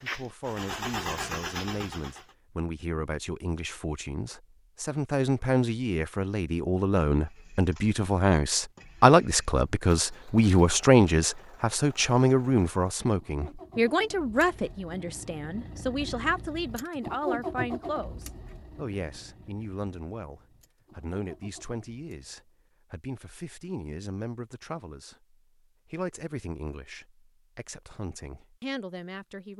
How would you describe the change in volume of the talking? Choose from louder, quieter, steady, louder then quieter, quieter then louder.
louder then quieter.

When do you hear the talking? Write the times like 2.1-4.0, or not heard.
0.0-29.5.